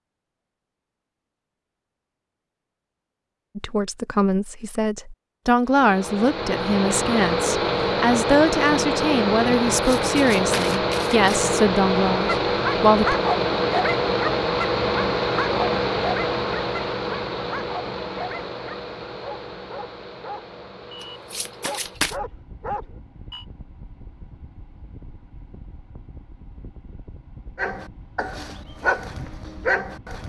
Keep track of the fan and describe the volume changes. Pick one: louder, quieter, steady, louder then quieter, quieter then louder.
quieter.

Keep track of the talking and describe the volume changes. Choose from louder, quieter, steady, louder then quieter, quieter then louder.
steady.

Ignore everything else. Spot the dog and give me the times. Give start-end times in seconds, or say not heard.
12.2-23.4, 27.6-30.2.